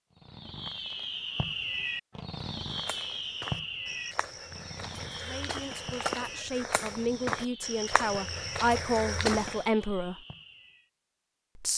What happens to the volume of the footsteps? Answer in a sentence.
The volume of the footsteps goes up.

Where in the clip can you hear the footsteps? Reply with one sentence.
You can hear the footsteps from 2.5 to 9.7 s.